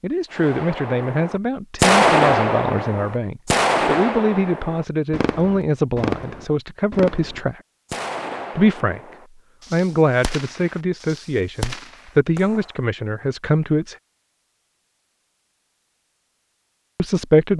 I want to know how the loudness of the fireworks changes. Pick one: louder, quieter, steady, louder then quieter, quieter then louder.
quieter.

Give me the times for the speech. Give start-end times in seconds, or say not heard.
0.0-7.5, 8.6-9.0, 9.7-13.9, 16.9-17.5.